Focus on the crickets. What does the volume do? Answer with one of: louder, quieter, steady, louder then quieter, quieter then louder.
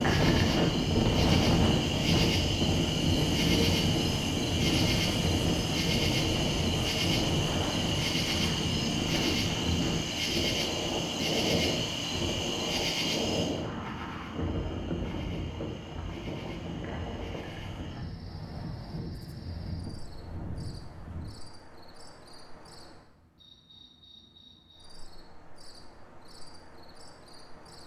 quieter.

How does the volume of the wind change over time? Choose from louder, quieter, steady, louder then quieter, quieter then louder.
quieter.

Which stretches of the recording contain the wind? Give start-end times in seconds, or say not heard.
0.0-21.4.